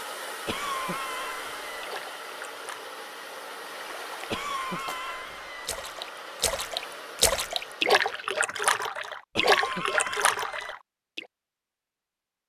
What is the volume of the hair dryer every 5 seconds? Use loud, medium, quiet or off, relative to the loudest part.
loud, loud, off.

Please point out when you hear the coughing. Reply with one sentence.
The coughing can be heard from 0.5 to 1.8 s, from 4.3 to 5.7 s and from 9.3 to 10.8 s.